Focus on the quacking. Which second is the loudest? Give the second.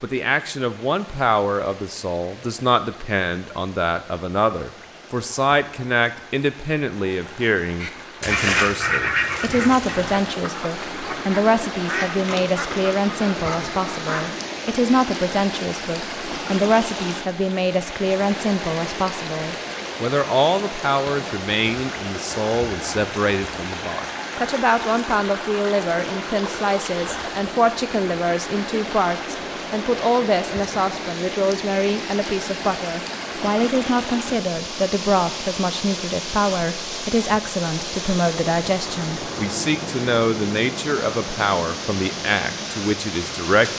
8 s.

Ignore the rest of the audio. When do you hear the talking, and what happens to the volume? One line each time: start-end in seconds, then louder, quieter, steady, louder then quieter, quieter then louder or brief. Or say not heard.
0.0-43.7 steady.